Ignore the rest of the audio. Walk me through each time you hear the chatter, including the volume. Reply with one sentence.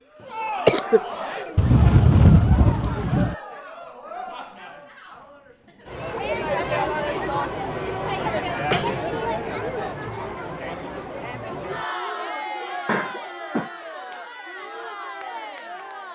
The chatter can be heard from 0.0 to 16.0 s, getting louder then quieter.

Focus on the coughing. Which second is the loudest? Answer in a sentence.
The loudest moment of the coughing is at 1 second.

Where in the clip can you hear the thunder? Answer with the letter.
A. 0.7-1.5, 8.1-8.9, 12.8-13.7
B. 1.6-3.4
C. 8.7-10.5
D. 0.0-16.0
B.